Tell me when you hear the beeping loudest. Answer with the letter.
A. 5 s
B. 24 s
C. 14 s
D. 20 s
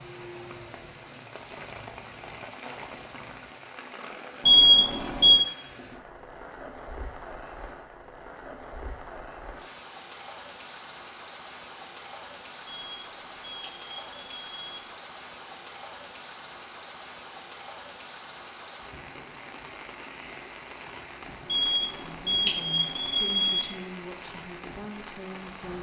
A.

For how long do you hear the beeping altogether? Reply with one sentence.
You can hear the beeping for 5 seconds altogether.